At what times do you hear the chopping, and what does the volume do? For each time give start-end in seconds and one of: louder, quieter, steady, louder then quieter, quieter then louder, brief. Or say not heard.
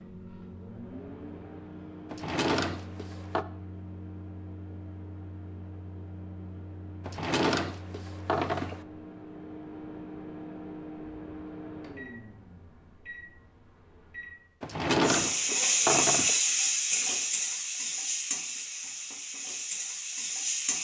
not heard.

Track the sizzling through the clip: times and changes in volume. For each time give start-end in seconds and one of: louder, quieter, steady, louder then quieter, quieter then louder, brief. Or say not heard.
15.0-20.7 quieter.